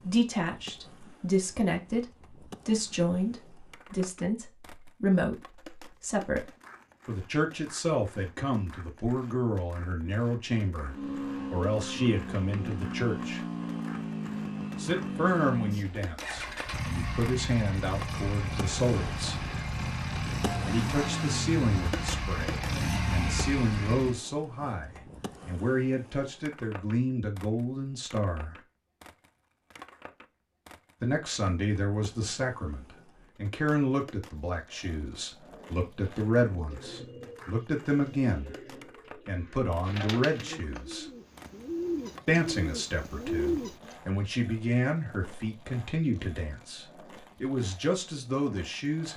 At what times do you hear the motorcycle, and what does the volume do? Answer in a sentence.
The motorcycle can be heard from 10.8 to 24.2 s, at a steady volume.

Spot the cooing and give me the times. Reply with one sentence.
The cooing can be heard from 35.5 to 44.0 s.